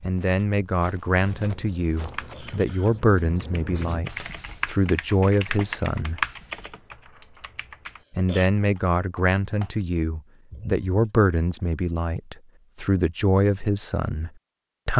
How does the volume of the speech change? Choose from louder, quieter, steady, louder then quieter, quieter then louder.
steady.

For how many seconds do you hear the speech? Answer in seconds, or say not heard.
13 s.